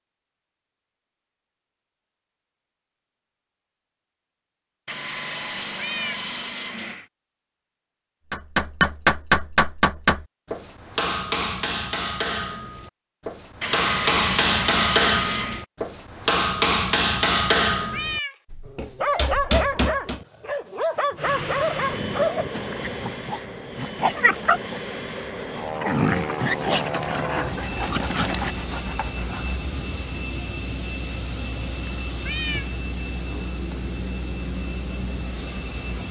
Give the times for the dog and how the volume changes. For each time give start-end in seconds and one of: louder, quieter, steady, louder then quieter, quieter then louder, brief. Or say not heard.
18.6-28.6 steady.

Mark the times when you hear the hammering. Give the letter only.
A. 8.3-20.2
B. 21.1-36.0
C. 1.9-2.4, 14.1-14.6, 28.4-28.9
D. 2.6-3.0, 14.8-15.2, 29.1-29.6
A.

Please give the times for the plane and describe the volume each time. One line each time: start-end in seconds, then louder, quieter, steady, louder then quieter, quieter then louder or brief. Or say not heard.
21.1-36.0 steady.